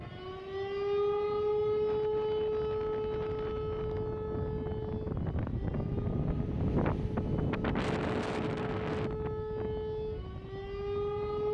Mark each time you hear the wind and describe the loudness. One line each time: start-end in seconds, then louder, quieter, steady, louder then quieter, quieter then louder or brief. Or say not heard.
0.0-11.4 louder then quieter.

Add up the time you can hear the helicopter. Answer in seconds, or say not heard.
not heard.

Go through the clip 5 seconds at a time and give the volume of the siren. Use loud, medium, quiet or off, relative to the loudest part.
loud, medium, loud.